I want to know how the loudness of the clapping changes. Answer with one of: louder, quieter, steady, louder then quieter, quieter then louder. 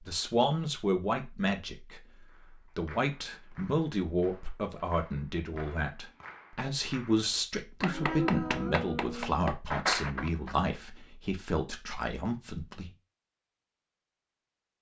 louder.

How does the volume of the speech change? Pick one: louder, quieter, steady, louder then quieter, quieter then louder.
steady.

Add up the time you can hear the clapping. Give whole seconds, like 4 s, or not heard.
8 s.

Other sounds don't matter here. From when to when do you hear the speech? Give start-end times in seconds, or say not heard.
0.0-12.9.